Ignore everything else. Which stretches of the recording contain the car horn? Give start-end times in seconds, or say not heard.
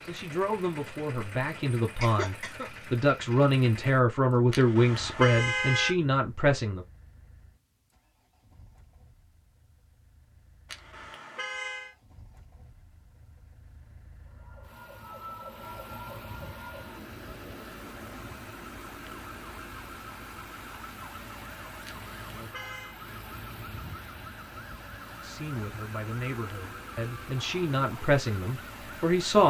4.5-6.0, 10.7-11.9, 21.9-23.0.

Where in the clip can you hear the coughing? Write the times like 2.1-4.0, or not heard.
2.0-2.7.